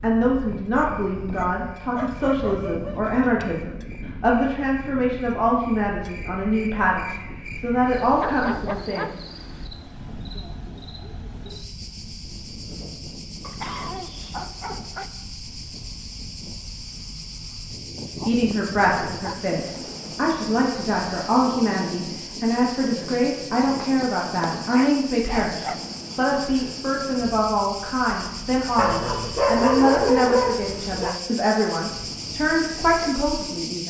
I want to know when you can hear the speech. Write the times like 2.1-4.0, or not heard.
0.0-9.1, 18.1-33.8.